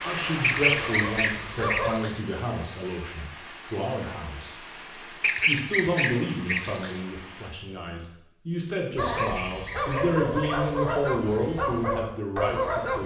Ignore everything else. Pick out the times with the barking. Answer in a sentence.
The barking can be heard from 0.1 to 1.9 s and from 8.9 to 13.0 s.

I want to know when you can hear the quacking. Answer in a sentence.
You can hear the quacking from 0.4 to 2.2 s, from 5.2 to 7.0 s and from 9.2 to 10.8 s.